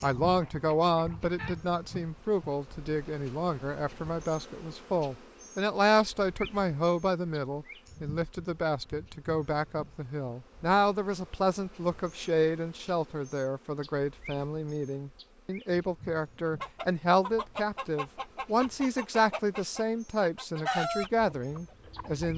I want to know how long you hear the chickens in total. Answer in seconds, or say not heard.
7 s.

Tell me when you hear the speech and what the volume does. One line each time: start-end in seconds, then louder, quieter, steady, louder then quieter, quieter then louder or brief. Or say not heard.
0.0-22.3 steady.